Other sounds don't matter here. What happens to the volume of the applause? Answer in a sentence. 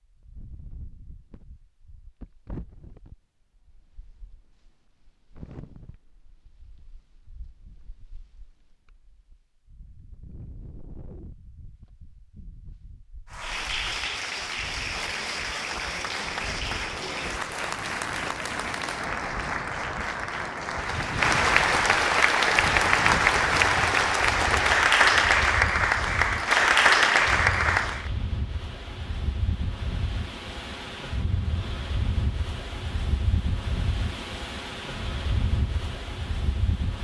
The loudness of the applause goes up.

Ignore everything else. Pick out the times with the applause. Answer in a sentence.
You can hear the applause from 13.3 to 28.1 s.